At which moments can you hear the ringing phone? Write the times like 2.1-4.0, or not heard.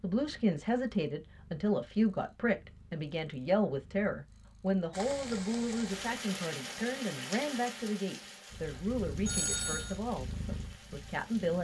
9.2-10.0.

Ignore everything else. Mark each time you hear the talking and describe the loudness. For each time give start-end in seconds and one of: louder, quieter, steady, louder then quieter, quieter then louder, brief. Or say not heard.
0.0-11.5 quieter.